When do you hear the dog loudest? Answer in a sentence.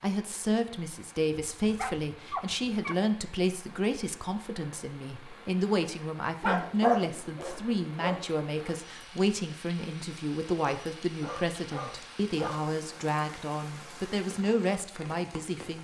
The loudest moment of the dog is at 7 seconds.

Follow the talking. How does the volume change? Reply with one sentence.
The volume of the talking stays about the same.